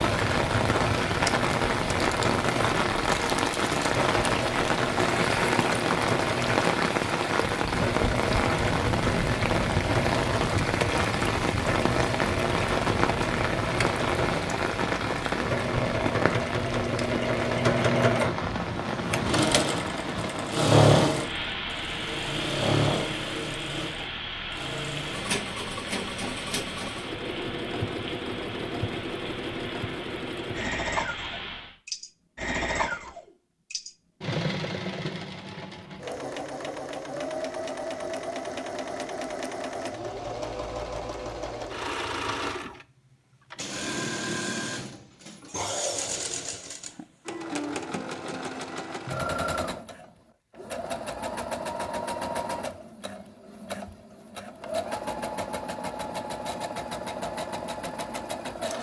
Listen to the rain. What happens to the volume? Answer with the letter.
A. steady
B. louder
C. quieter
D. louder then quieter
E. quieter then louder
C.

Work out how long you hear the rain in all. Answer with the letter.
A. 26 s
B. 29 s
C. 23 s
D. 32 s
D.